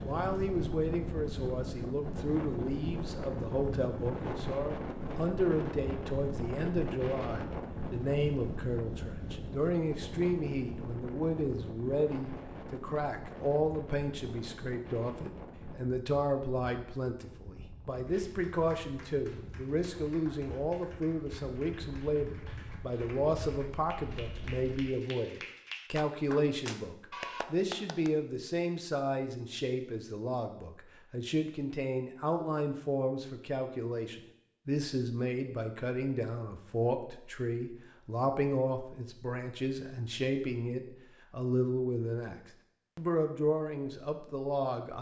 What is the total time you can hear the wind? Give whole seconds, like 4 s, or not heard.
25 s.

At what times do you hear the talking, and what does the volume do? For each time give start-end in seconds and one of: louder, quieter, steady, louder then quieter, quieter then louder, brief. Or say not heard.
0.0-42.4 steady
43.0-44.9 brief.